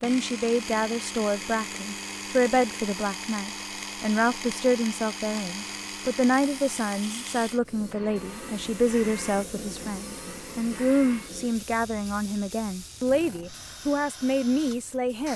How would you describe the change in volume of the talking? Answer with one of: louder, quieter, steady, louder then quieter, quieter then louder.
steady.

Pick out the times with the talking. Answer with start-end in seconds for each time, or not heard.
0.0-15.3.